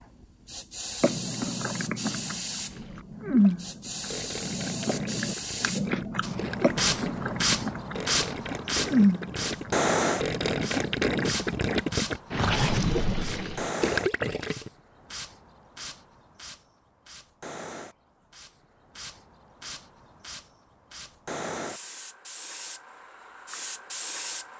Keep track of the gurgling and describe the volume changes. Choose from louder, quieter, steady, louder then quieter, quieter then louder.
louder.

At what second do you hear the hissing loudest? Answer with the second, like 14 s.
10 s.